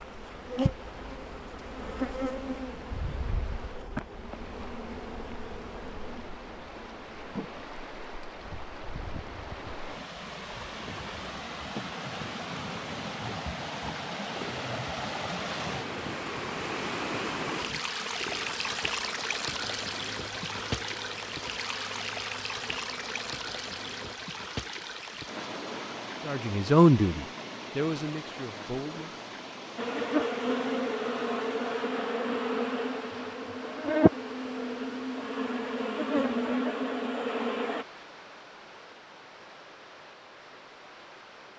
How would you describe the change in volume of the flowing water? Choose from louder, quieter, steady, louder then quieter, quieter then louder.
louder then quieter.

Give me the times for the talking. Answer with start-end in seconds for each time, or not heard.
26.2-29.2.